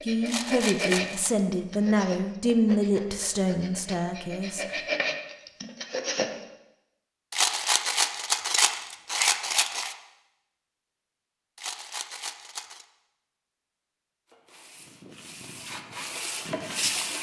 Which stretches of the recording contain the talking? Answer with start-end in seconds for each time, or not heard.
0.0-4.8.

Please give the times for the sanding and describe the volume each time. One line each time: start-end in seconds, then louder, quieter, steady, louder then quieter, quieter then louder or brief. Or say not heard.
0.0-6.3 quieter then louder
14.2-17.1 brief.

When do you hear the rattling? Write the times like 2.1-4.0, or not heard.
0.2-1.4, 7.3-9.9, 11.6-12.8.